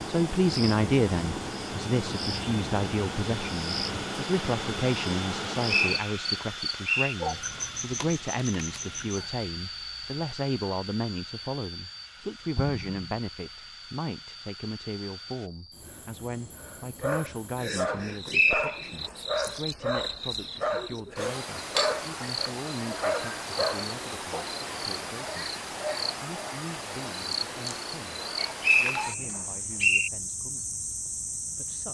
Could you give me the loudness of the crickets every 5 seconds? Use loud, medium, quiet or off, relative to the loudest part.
loud, loud, medium, medium, loud, loud, loud.